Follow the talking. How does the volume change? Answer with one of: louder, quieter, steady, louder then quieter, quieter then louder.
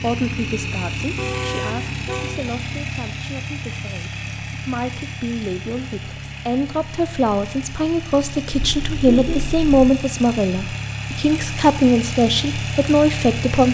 louder.